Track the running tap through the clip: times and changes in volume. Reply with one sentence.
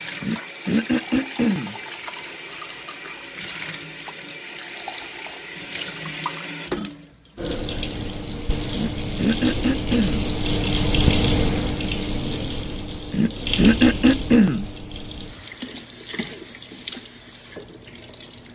The running tap can be heard from 0.0 to 18.5 s, getting louder then quieter.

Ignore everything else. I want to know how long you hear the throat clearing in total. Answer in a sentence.
The throat clearing can be heard for 5 seconds in total.